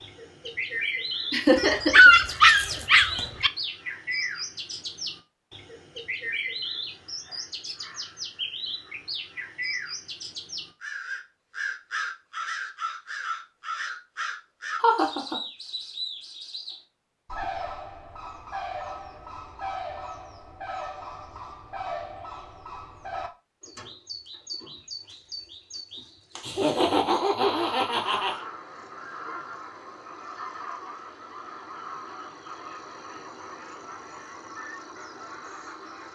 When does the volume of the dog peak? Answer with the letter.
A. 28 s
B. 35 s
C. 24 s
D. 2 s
D.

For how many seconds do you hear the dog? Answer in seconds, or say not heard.
2 s.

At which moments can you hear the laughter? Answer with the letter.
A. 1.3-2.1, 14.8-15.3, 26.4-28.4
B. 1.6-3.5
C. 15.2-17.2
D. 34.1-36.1
A.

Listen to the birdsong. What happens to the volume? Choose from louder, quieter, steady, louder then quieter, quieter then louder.
quieter.